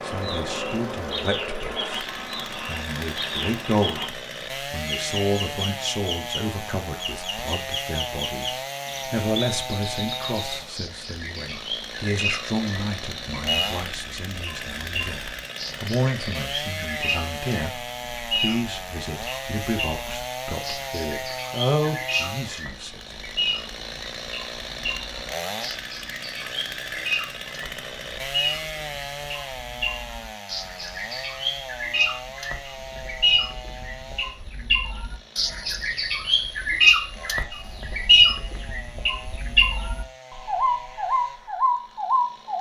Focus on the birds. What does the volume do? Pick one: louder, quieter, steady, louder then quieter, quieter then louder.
louder.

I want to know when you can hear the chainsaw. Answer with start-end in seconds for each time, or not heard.
0.0-42.5.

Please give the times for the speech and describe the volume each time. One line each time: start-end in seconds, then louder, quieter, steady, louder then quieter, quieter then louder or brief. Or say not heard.
0.0-23.0 steady.